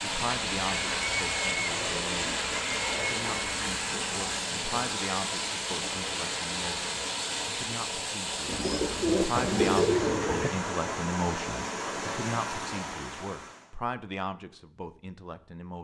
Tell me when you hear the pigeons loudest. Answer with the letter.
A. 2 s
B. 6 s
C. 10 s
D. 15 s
C.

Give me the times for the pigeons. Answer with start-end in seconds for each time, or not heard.
0.9-3.6, 8.4-10.5.